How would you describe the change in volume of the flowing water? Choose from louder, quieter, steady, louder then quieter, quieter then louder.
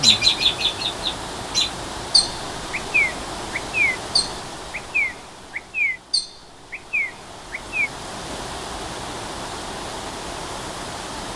quieter then louder.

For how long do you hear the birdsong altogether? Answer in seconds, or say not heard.
8 s.